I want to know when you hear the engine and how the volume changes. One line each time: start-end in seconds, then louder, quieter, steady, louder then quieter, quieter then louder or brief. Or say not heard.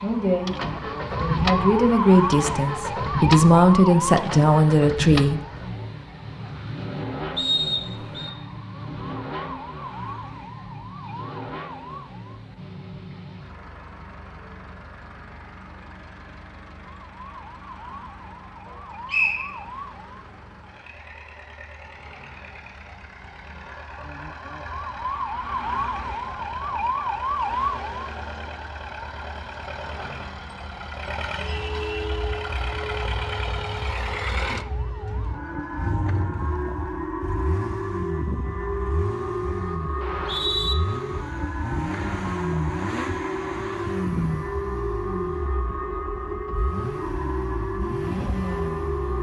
0.0-49.1 quieter then louder.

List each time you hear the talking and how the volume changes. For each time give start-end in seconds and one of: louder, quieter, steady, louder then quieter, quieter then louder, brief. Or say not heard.
0.0-0.6 brief
1.1-5.4 quieter then louder.